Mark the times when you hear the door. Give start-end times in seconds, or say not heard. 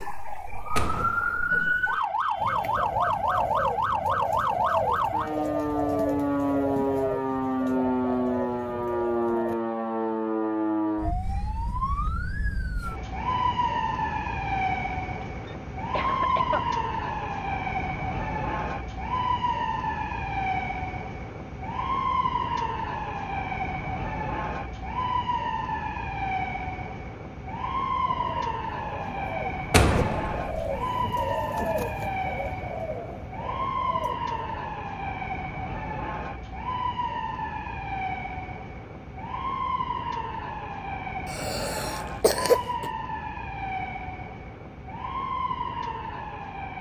0.8-1.6, 29.7-30.6.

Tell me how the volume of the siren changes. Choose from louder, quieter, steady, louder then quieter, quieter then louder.
quieter.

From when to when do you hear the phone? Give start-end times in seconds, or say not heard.
not heard.